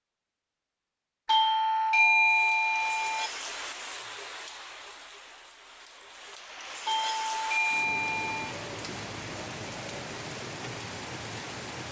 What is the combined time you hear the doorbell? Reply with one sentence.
You can hear the doorbell for 4 seconds altogether.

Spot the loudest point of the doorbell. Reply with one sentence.
The loudest moment of the doorbell is at 2 seconds.